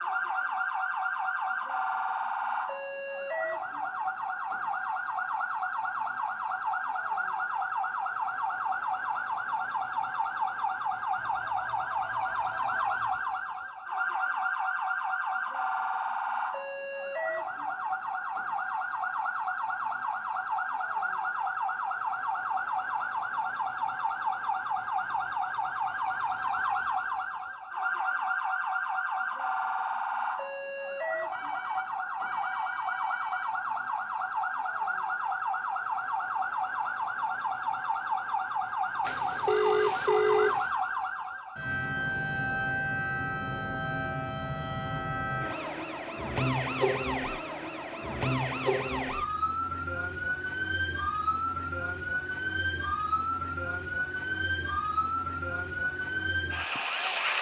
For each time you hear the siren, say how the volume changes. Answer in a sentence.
You can hear the siren from 0.0 to 57.3 s, at a steady volume.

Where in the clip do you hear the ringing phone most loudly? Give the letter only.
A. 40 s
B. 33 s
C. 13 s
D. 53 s
A.